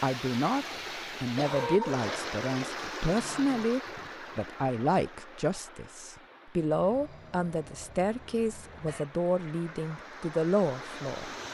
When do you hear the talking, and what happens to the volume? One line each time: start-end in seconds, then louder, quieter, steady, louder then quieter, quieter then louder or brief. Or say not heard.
0.0-11.3 steady.